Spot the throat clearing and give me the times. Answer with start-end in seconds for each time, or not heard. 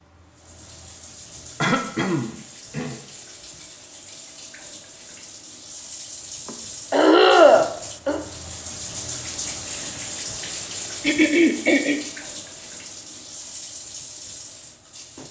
1.6-3.0, 6.5-8.2, 11.0-12.0.